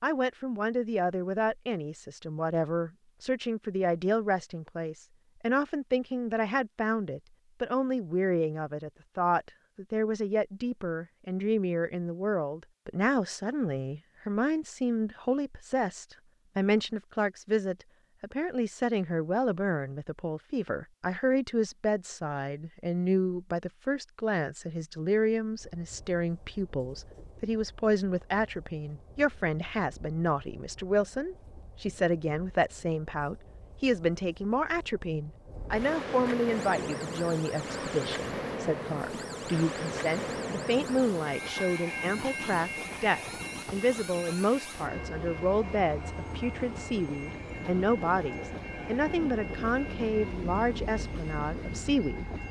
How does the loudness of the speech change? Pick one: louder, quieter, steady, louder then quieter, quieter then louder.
steady.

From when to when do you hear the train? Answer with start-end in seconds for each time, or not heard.
25.6-52.4.